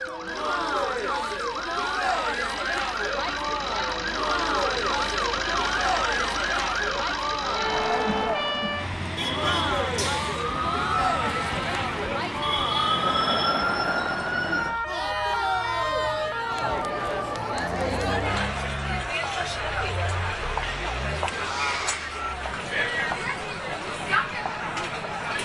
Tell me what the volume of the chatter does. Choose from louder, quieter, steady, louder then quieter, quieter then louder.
steady.